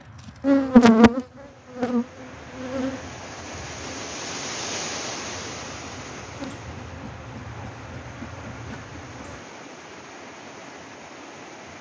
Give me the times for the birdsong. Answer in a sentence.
You can't hear the birdsong here.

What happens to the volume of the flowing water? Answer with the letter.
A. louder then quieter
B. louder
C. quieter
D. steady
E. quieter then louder
A.